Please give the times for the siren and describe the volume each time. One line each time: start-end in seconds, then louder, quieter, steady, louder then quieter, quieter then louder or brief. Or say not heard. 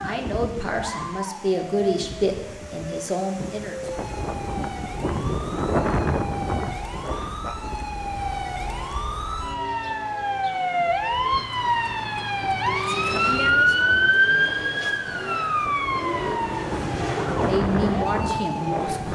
0.0-19.1 louder then quieter.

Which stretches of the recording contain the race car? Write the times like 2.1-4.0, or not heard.
12.7-19.1.